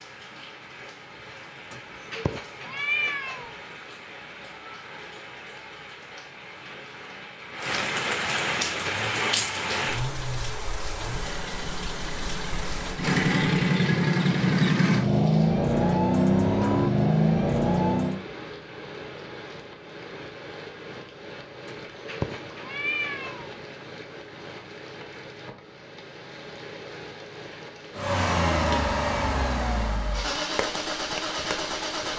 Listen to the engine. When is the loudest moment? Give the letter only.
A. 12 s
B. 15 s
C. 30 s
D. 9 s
B.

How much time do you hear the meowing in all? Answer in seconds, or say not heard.
4 s.